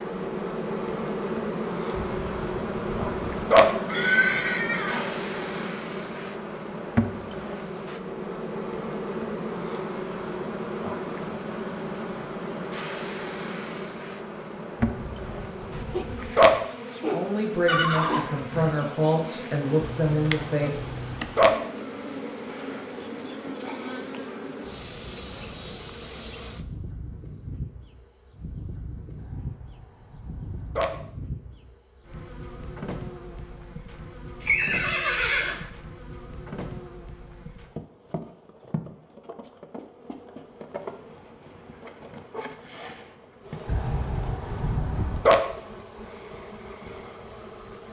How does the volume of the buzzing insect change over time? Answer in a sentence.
The volume of the buzzing insect goes down.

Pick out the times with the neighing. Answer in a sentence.
You can hear the neighing from 3.9 to 5.1 s, from 17.6 to 18.8 s and from 34.4 to 35.7 s.